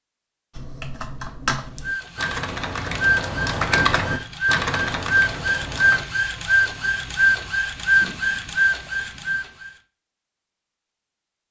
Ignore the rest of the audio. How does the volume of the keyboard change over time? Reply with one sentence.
The loudness of the keyboard goes up, then down.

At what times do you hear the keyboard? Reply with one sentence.
The keyboard can be heard from 0.6 to 6.0 s.